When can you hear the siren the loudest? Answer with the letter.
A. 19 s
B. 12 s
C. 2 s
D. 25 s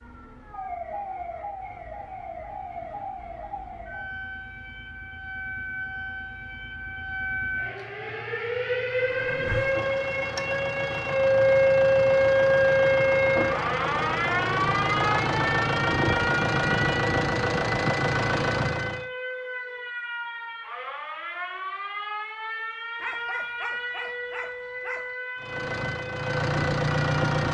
B.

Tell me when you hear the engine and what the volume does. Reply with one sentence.
The engine can be heard from 8.8 to 19.1 s, getting louder; and briefly from 25.4 to 27.5 s.